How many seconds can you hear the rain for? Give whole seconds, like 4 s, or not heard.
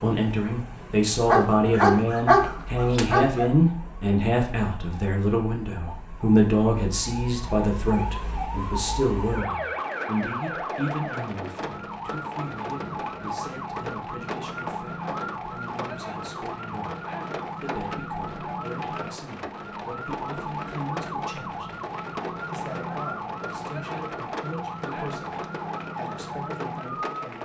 18 s.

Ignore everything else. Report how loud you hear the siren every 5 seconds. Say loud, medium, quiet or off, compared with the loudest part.
medium, loud, loud, loud, loud, loud.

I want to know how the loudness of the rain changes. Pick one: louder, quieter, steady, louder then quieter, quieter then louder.
steady.